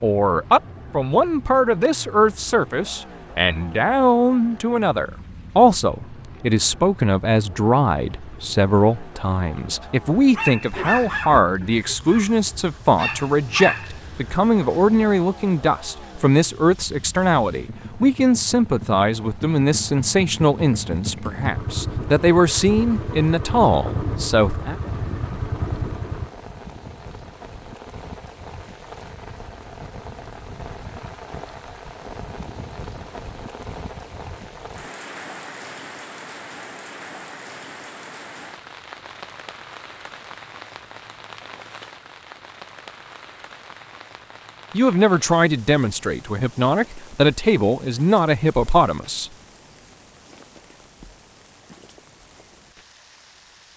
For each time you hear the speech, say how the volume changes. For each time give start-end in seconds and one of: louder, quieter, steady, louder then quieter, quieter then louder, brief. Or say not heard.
0.0-24.8 steady
44.7-49.3 quieter then louder.